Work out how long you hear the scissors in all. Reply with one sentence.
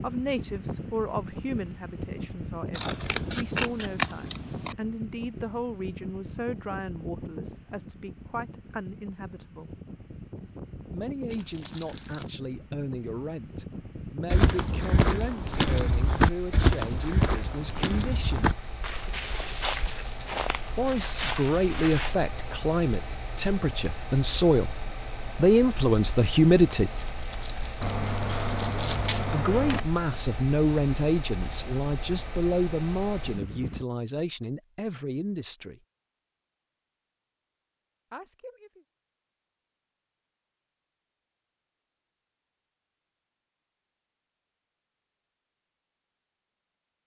You can hear the scissors for 4 seconds altogether.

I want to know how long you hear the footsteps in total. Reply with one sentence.
You can hear the footsteps for 8 seconds altogether.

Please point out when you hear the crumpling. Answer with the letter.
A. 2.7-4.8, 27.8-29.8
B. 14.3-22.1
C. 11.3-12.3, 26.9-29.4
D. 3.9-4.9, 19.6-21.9
C.